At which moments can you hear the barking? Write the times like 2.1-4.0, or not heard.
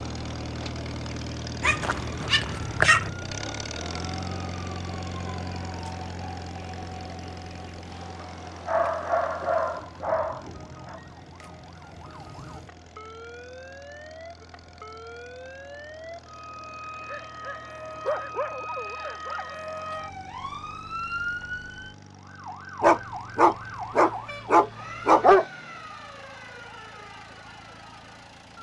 1.6-3.0, 8.2-11.0, 17.0-19.6, 22.8-25.4.